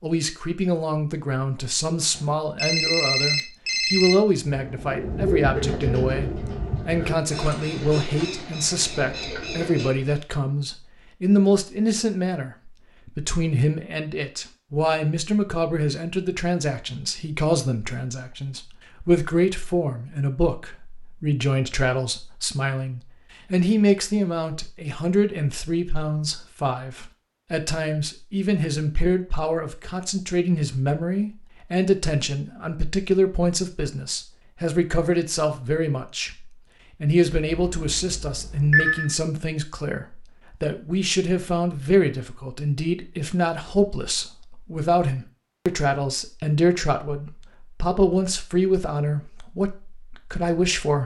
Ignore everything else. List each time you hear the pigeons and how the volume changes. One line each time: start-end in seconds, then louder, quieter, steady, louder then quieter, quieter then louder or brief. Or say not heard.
4.5-10.2 quieter.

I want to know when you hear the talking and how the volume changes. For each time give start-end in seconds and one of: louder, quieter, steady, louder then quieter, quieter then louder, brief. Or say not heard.
0.0-51.0 steady.